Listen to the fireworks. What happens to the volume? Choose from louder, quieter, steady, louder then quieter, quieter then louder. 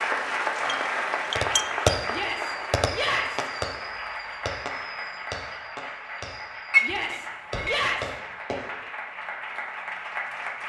quieter then louder.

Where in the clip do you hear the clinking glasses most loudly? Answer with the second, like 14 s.
7 s.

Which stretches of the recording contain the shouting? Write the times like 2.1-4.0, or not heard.
2.1-3.5, 6.8-8.2.